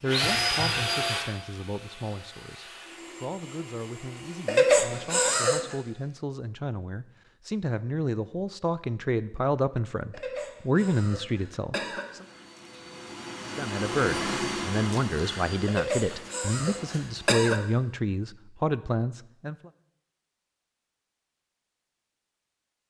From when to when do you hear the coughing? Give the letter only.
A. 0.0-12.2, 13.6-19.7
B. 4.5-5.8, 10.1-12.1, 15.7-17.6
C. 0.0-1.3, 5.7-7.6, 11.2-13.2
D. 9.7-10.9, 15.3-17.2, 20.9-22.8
B.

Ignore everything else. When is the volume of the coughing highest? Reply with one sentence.
The volume of the coughing peaks at 5 seconds.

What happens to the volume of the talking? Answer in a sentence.
The loudness of the talking goes up.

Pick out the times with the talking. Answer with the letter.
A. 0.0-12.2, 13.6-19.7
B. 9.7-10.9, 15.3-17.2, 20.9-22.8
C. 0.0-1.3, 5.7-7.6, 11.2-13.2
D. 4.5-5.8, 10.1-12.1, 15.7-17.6
A.